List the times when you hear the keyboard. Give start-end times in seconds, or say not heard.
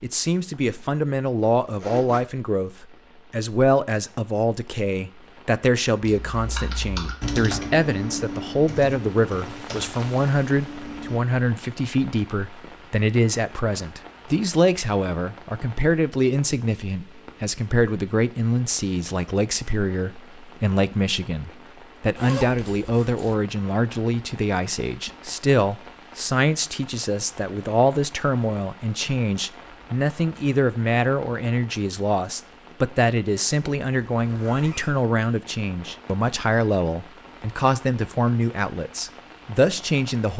6.0-11.2.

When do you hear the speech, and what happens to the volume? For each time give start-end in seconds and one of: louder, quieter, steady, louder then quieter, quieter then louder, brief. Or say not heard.
0.0-40.3 steady.